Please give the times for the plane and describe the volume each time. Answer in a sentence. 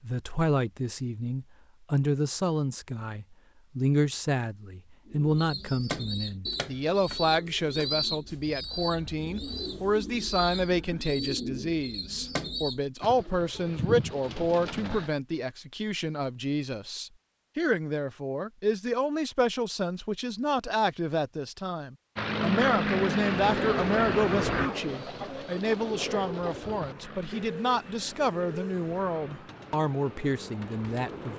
You can hear the plane from 22.1 to 31.3 s, getting quieter.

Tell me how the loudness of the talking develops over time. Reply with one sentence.
The loudness of the talking stays about the same.